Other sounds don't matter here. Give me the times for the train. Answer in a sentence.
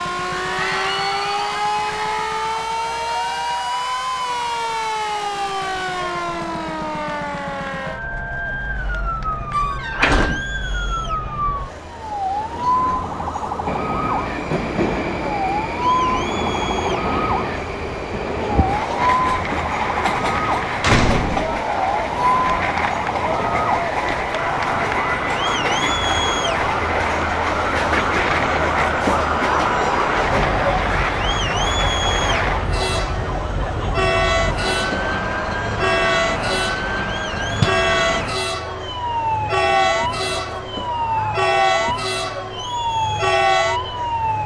The train can be heard from 13.7 to 44.4 s.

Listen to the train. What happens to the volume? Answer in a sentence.
The volume of the train stays about the same.